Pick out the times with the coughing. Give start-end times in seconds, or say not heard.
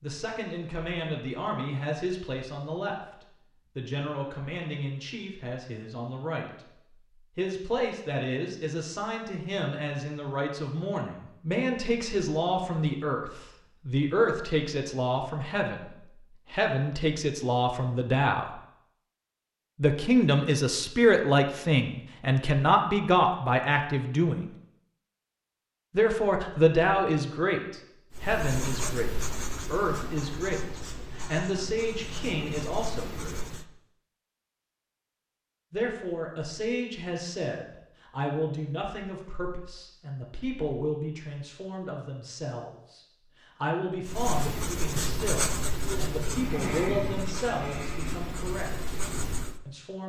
not heard.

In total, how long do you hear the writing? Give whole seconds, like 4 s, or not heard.
11 s.